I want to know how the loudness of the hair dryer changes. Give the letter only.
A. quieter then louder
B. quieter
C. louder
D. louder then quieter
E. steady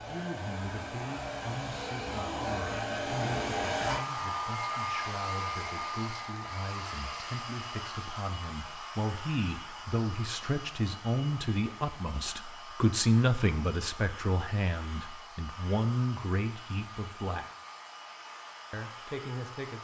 B.